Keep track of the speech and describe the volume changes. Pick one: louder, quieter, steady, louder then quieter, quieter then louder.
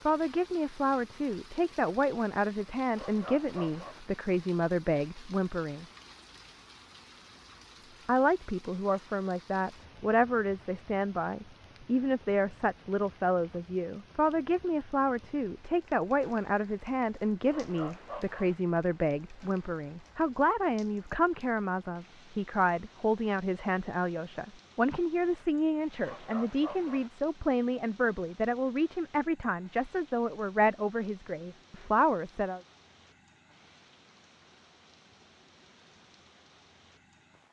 steady.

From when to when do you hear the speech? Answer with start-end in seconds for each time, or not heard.
0.1-5.8, 8.1-32.6.